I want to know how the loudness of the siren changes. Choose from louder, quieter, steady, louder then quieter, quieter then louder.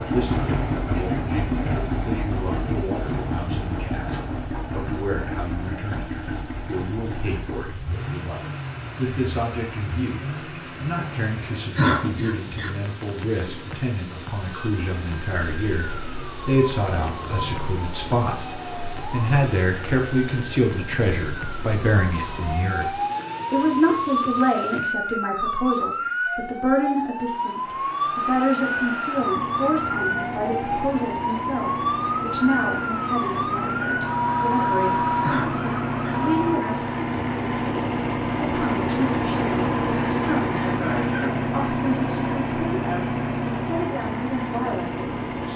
louder.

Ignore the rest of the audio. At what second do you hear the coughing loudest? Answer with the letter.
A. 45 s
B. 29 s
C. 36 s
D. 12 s
D.